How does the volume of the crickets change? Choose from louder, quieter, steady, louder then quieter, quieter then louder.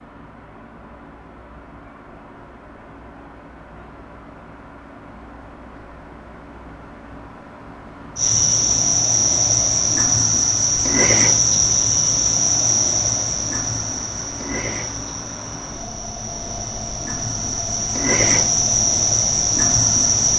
quieter then louder.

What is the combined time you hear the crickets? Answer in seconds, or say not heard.
12 s.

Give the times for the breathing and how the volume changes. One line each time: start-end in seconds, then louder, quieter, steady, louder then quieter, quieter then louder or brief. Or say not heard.
not heard.